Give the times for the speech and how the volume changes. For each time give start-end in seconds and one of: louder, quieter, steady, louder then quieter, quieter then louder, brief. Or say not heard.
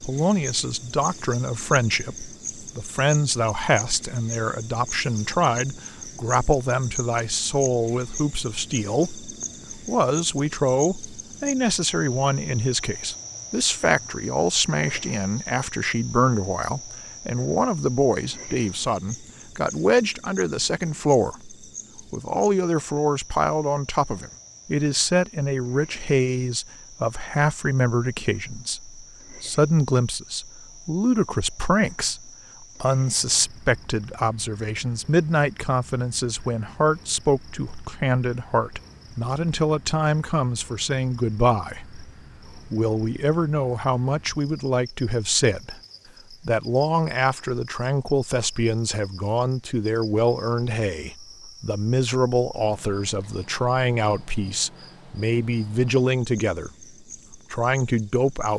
0.0-56.7 steady
57.5-58.5 brief.